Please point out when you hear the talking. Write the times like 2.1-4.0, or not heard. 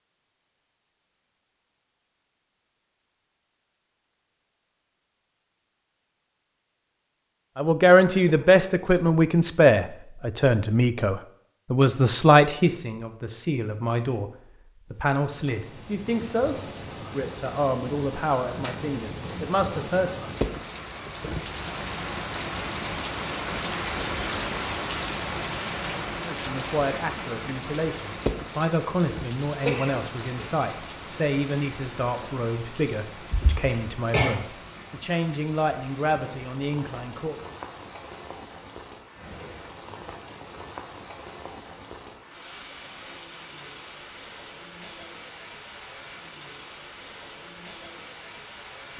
7.5-20.2, 26.2-37.4.